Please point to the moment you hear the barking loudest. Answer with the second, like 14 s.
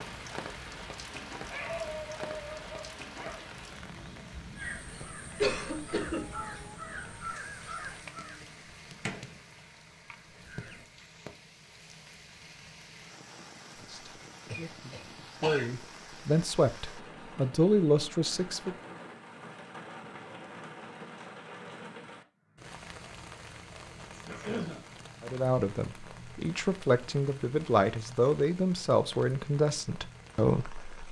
2 s.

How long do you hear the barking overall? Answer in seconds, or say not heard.
2 s.